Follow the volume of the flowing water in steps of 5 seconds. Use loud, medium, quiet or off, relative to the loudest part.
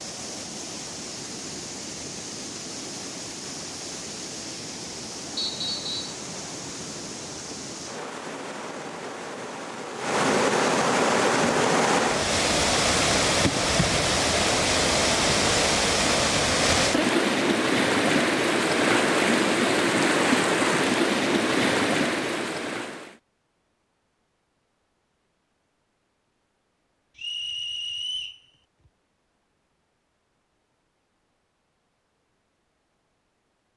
quiet, quiet, loud, loud, loud, off, off.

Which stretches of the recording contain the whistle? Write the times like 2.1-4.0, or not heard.
5.3-6.2, 27.1-28.4.